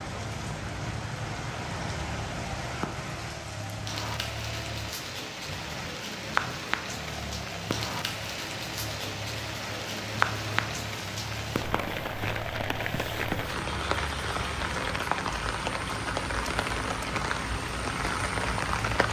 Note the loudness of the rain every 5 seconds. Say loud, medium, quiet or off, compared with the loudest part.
medium, loud, loud, loud.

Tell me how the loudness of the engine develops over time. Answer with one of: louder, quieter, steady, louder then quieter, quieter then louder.
steady.